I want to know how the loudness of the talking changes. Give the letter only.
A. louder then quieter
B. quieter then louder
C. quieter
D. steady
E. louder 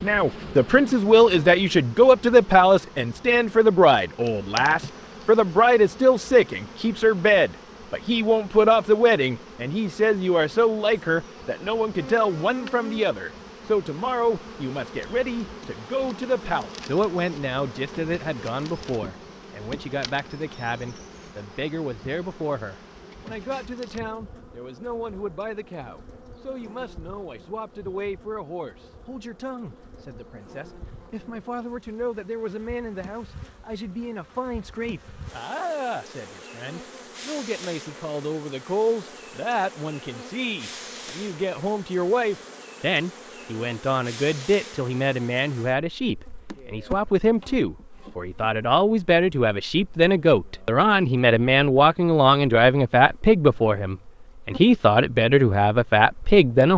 B.